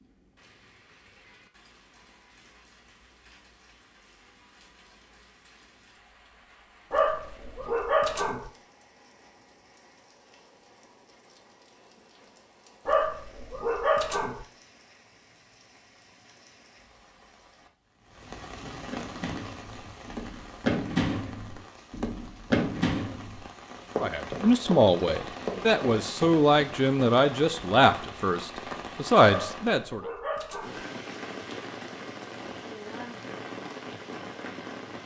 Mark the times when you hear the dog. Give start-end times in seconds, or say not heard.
6.9-8.5, 12.8-14.4, 29.2-30.9.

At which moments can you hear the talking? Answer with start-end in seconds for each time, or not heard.
23.9-30.0.